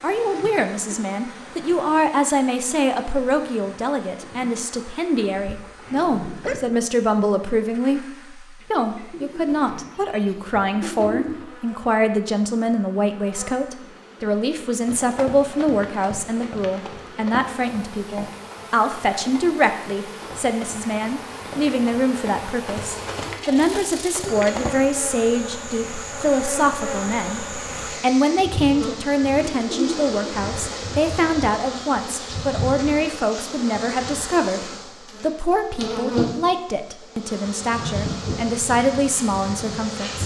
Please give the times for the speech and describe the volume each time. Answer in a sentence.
The speech can be heard from 0.0 to 40.2 s, at a steady volume.